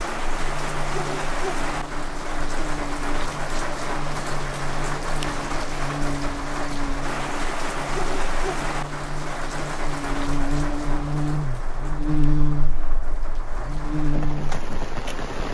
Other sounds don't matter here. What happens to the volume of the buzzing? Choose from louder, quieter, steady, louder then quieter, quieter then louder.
louder.